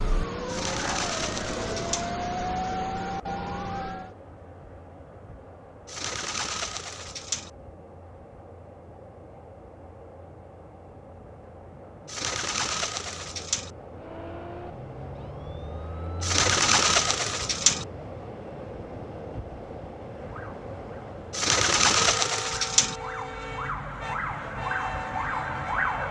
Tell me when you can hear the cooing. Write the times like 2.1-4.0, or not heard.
0.5-2.1, 5.8-7.5, 12.1-13.7, 16.2-17.9, 21.3-22.9.